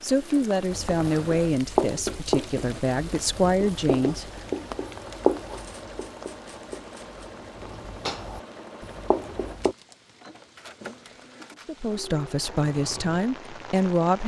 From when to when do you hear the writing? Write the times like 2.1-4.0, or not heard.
0.7-9.8.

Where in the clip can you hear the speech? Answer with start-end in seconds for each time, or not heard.
0.0-4.2, 11.7-14.2.